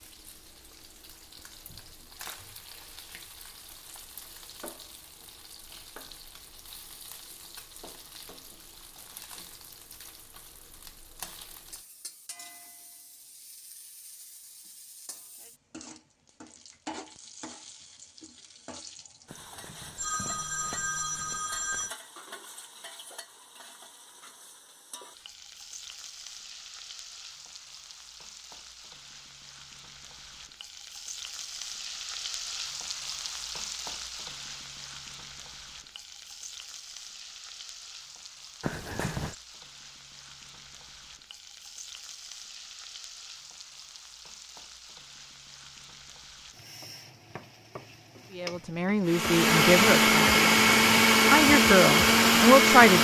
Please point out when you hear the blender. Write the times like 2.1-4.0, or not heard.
49.0-52.9.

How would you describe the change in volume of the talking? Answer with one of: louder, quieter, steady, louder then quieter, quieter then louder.
quieter then louder.